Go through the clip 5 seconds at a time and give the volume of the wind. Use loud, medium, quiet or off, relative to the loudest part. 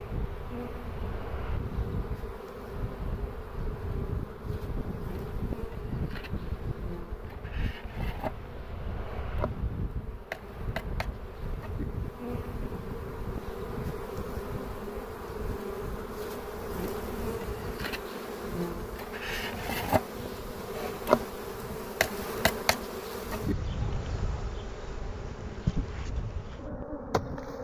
loud, loud, loud, medium, medium, medium.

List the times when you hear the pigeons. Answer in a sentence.
The pigeons can't be heard in this clip.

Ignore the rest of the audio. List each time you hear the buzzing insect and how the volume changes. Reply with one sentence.
You can hear the buzzing insect from 0.0 to 27.6 s, getting louder.